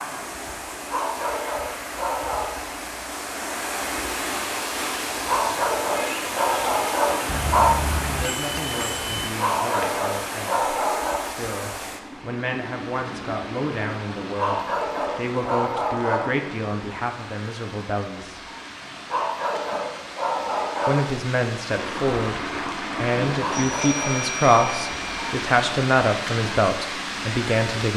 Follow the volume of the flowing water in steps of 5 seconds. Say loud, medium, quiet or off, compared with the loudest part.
loud, loud, medium, medium, loud, loud.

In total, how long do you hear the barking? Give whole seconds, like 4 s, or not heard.
12 s.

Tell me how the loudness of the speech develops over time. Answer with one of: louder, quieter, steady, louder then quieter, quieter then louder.
louder.